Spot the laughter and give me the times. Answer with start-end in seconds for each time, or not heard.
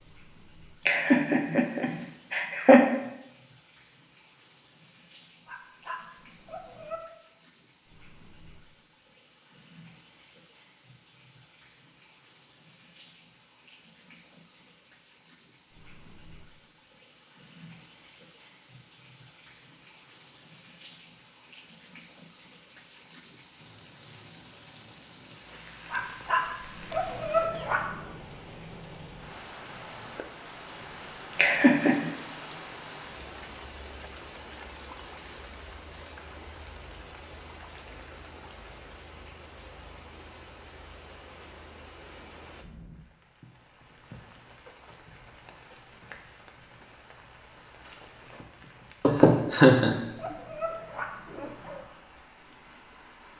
0.8-2.9, 31.4-32.1, 49.0-50.0.